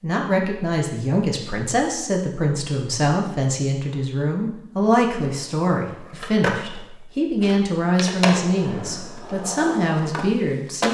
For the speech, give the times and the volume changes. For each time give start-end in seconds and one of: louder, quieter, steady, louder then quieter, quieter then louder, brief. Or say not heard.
0.0-10.8 steady.